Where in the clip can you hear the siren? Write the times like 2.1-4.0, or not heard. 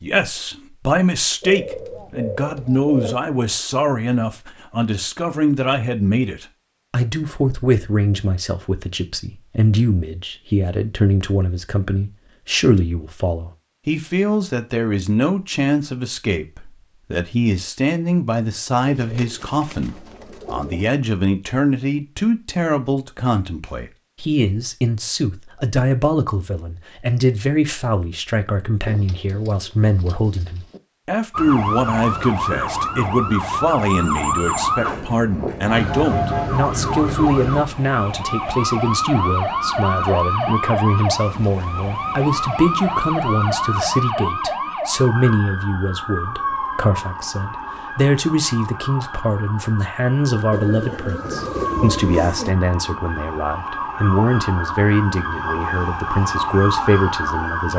31.3-57.7.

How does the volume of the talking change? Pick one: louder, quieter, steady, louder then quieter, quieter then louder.
steady.